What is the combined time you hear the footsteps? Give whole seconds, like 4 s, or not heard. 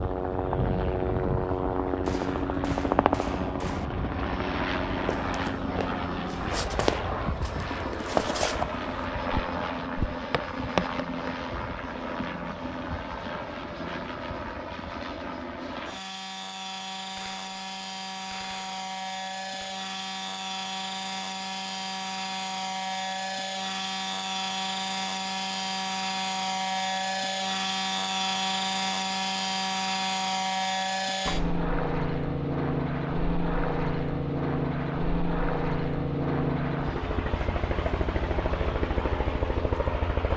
6 s.